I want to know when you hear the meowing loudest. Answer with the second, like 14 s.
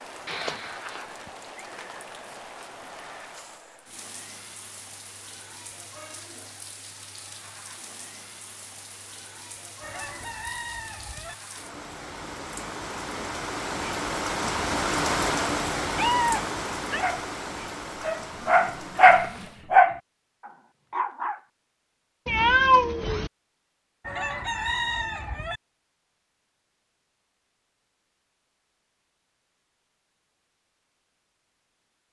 23 s.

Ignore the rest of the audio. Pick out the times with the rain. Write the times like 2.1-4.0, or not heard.
0.0-19.6.